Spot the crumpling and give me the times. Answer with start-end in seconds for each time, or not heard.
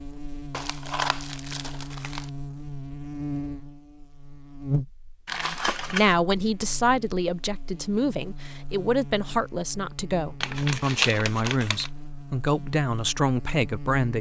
0.5-2.2, 5.2-6.2, 10.4-11.9.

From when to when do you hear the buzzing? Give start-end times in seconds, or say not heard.
0.0-14.1.